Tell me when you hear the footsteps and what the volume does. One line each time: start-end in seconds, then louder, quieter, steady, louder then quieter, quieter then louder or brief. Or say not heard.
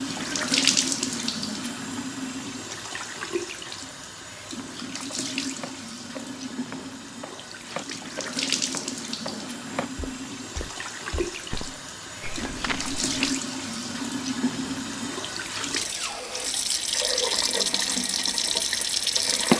4.5-13.3 louder.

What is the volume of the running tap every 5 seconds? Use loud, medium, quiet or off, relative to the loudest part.
loud, medium, medium, loud.